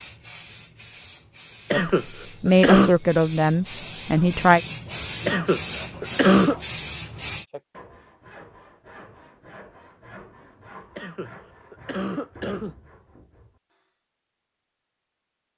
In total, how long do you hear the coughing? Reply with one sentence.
You can hear the coughing for 4 seconds altogether.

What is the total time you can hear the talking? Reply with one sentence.
The talking can be heard for 3 seconds in total.